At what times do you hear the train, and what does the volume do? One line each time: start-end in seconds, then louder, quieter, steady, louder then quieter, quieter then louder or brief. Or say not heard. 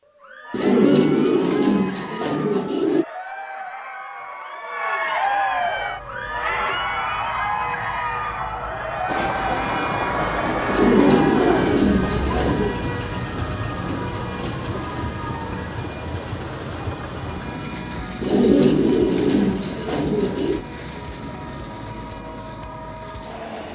9.1-23.7 quieter.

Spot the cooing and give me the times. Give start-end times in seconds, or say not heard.
0.5-3.0, 10.7-12.8, 18.2-20.6.